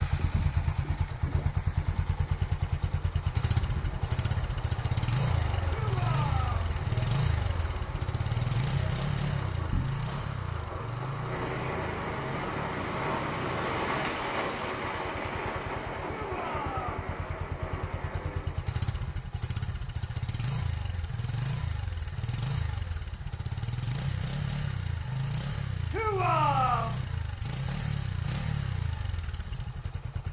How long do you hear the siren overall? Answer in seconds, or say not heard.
not heard.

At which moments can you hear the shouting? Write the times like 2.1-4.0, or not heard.
5.7-6.8, 16.1-17.1, 25.9-27.0.